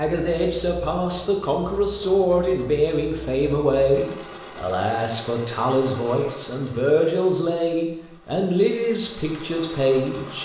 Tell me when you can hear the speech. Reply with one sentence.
The speech can be heard from 0.0 to 10.4 s.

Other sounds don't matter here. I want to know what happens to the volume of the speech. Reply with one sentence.
The volume of the speech stays about the same.